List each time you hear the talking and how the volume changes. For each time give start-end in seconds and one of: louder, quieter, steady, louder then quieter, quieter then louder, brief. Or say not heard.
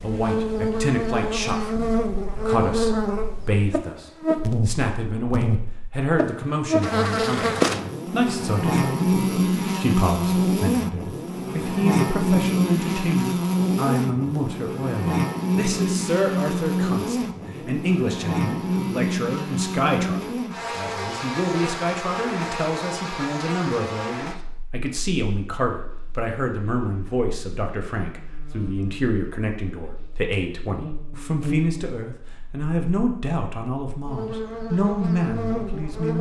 0.0-36.1 steady.